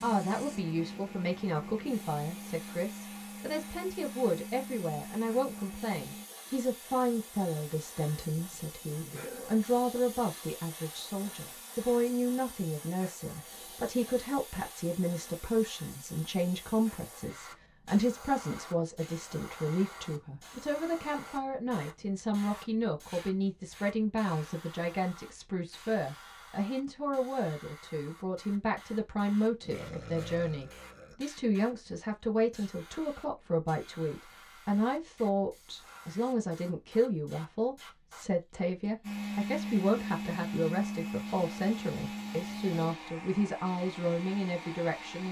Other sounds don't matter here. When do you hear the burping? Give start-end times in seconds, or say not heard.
8.5-9.6, 29.6-31.1.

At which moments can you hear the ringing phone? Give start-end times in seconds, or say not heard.
not heard.